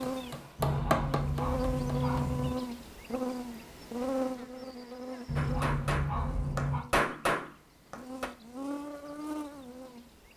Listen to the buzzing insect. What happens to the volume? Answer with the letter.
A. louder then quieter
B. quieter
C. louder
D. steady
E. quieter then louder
E.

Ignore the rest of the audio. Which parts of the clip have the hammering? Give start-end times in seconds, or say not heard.
0.0-2.4, 5.3-8.3.